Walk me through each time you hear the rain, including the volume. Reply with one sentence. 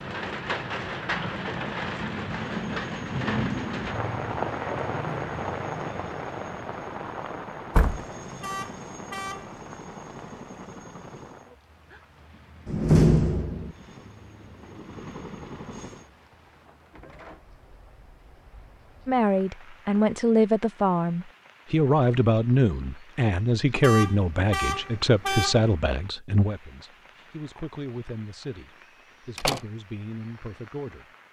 You can hear the rain from 0.0 to 31.2 s, getting quieter.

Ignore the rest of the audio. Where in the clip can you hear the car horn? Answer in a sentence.
The car horn can be heard from 8.4 to 9.6 s and from 23.8 to 25.8 s.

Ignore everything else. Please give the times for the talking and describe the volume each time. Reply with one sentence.
The talking can be heard from 19.1 to 31.1 s, getting quieter.